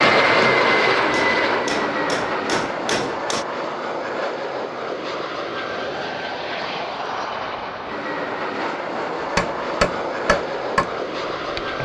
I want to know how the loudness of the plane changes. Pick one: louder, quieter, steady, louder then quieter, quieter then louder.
quieter.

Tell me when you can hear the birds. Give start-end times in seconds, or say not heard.
not heard.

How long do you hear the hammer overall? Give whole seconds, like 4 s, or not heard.
6 s.